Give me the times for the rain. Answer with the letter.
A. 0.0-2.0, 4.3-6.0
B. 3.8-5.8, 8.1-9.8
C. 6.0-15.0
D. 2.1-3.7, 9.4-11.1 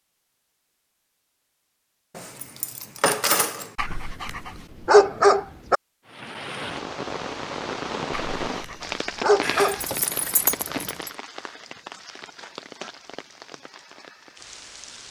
C.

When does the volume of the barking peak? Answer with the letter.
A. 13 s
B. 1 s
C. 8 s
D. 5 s
D.